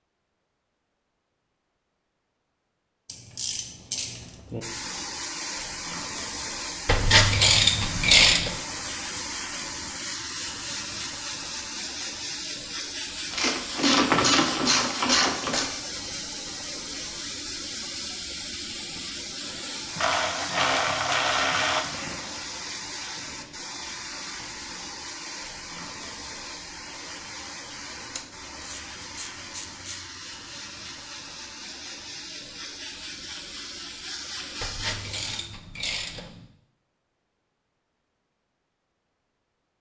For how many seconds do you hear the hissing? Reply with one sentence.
The hissing can be heard for 31 seconds in total.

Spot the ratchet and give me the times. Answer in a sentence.
You can hear the ratchet from 3.0 to 4.6 s, from 6.8 to 8.6 s, from 13.3 to 15.7 s, from 19.9 to 21.8 s, from 28.1 to 30.1 s and from 34.6 to 36.5 s.